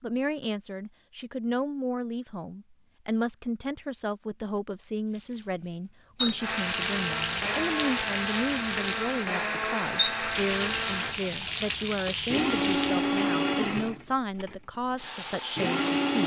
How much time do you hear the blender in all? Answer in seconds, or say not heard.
10 s.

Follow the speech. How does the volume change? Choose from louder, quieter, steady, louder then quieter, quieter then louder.
steady.